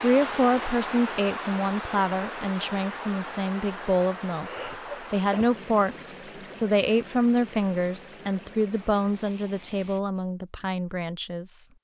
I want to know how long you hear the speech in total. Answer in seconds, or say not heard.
12 s.